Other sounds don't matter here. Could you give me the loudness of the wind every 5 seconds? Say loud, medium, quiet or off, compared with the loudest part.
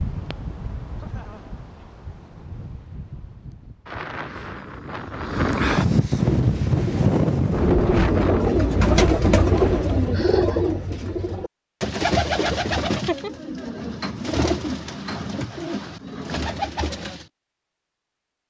quiet, loud, off, off.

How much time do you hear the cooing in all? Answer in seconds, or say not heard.
11 s.